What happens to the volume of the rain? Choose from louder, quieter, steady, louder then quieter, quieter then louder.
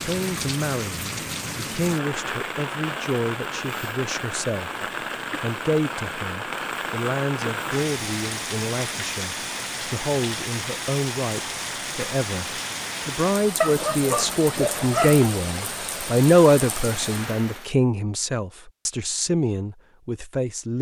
steady.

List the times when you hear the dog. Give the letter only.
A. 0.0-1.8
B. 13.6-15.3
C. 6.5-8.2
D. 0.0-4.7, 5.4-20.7
B.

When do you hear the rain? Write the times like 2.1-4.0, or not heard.
0.0-17.8.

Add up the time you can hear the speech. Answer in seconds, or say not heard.
20 s.